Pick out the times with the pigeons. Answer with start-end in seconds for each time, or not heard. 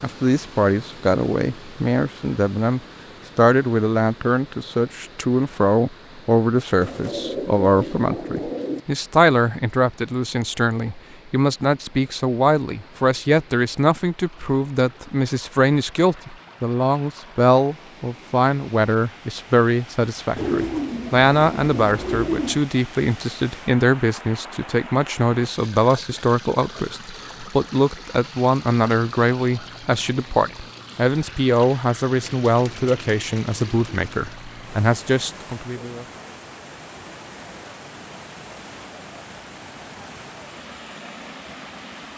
6.8-8.8, 20.4-22.6, 32.2-34.2.